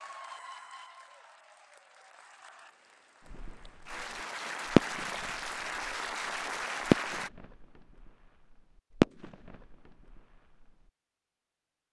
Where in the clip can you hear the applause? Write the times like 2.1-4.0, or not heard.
0.0-7.3.